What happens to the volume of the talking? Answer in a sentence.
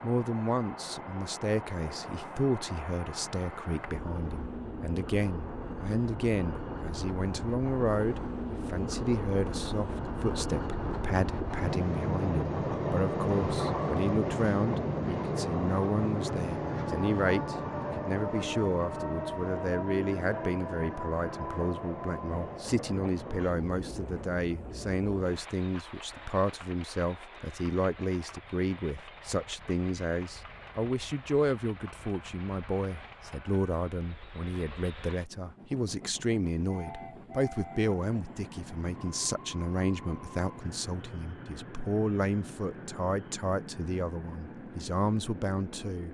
The loudness of the talking stays about the same.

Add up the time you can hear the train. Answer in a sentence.
You can hear the train for 46 seconds altogether.